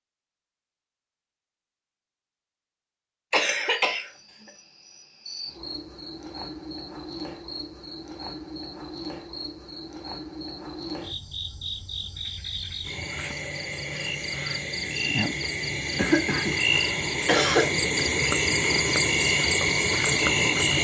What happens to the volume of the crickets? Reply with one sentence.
The loudness of the crickets goes up.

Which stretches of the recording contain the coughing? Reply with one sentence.
You can hear the coughing from 3.3 to 4.0 s and from 15.9 to 17.7 s.